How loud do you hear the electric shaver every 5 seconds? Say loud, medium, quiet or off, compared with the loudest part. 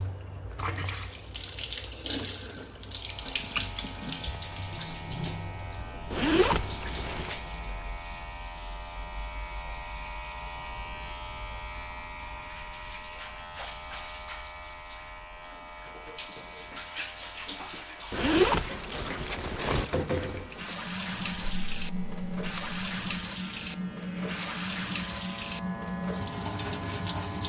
medium, loud, loud, medium, medium, loud.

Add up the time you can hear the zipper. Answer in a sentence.
You can hear the zipper for 3 seconds altogether.